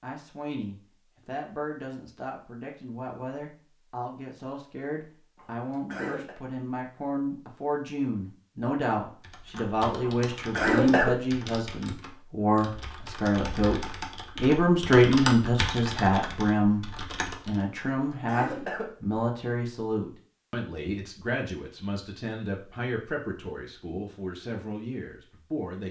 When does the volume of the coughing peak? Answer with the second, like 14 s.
11 s.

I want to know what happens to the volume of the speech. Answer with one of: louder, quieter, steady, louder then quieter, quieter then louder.
louder then quieter.